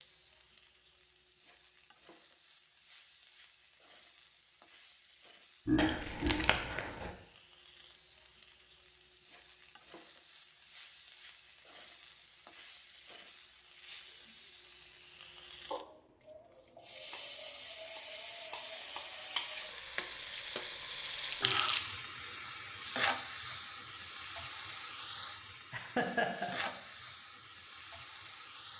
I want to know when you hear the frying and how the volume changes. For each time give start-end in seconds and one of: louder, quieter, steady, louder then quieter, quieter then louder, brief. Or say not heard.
0.0-28.7 louder.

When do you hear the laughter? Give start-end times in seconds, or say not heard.
5.7-6.6, 25.7-26.7.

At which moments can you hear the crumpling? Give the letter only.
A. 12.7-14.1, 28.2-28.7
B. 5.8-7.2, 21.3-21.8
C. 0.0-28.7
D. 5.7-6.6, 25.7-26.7
B.